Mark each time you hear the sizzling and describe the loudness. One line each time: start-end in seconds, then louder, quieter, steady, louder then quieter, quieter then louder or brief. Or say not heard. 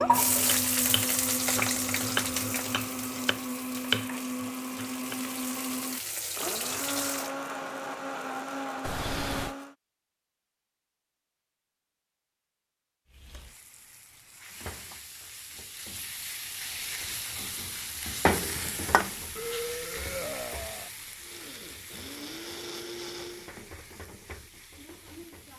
0.0-7.3 quieter then louder
13.1-25.5 louder then quieter.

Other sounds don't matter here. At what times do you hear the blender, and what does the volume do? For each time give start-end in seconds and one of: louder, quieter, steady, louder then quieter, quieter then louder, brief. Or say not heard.
0.0-9.8 steady
21.2-23.6 brief.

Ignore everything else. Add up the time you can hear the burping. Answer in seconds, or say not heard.
3 s.